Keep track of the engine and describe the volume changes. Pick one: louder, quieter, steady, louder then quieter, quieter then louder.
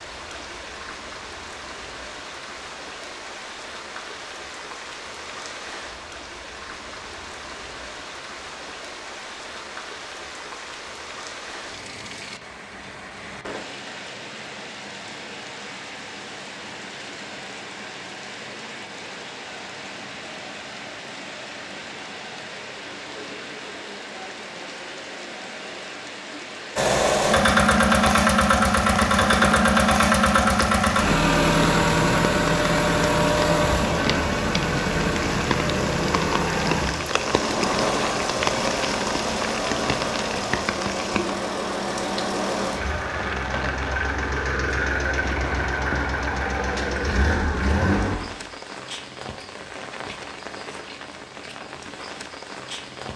quieter.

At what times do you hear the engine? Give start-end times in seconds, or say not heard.
26.8-48.2.